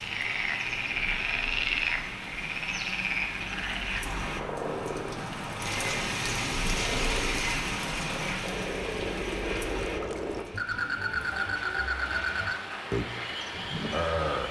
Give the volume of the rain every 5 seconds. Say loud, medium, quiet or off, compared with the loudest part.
medium, loud, medium.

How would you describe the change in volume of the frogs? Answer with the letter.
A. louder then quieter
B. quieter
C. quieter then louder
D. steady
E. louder
C.